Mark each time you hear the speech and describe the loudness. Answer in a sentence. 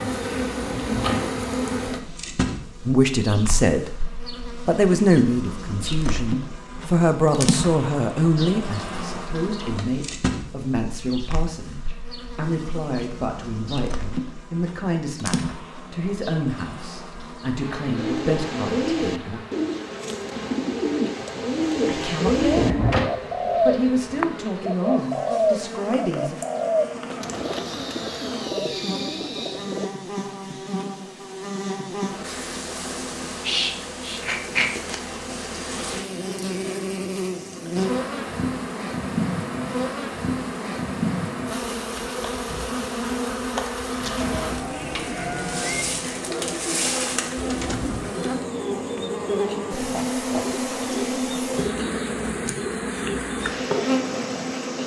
The speech can be heard briefly from 2.9 to 3.9 s; from 4.7 to 19.4 s, getting quieter; briefly from 21.9 to 23.0 s; and briefly from 23.6 to 26.4 s.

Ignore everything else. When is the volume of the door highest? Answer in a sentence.
The loudest moment of the door is at 23 seconds.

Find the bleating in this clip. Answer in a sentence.
The bleating can be heard from 22.9 to 24.5 s and from 44.2 to 46.2 s.